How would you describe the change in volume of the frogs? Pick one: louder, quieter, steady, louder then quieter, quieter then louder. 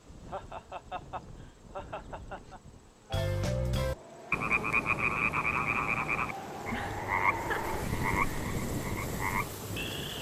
quieter.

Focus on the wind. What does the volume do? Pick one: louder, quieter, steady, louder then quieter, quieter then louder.
louder.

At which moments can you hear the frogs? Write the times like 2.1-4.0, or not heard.
3.1-10.1.